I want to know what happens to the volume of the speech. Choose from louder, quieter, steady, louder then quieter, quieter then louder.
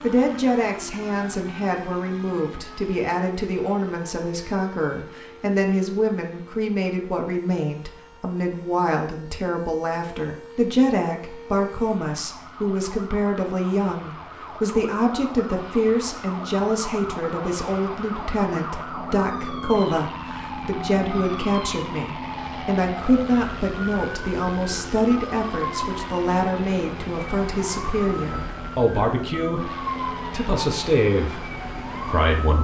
steady.